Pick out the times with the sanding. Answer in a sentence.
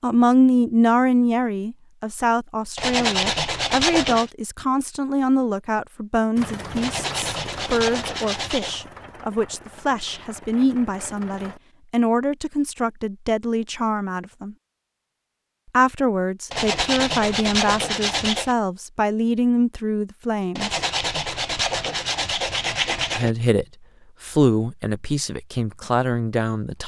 You can hear the sanding from 2.8 to 4.3 s, from 6.8 to 8.8 s, from 16.5 to 18.6 s and from 20.6 to 23.3 s.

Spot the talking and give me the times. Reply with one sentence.
You can hear the talking from 0.0 to 14.6 s, from 15.7 to 20.8 s and from 23.1 to 26.8 s.